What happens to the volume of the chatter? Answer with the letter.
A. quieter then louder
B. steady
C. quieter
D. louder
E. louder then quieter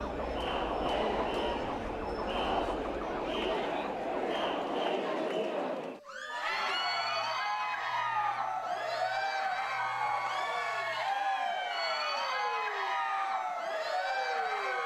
B.